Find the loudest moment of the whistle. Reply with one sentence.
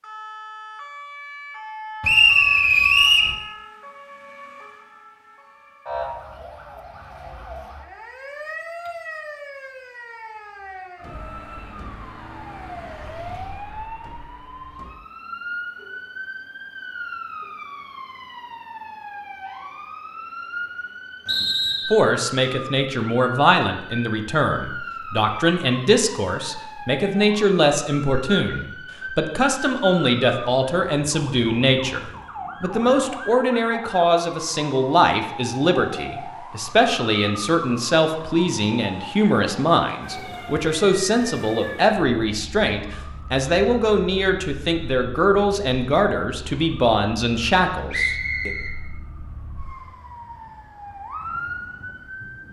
The loudest moment of the whistle is at 2 seconds.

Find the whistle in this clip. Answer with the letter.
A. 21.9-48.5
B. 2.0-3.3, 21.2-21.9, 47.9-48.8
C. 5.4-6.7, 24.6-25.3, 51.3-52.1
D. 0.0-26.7
B.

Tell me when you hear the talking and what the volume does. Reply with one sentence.
You can hear the talking from 21.9 to 48.5 s, at a steady volume.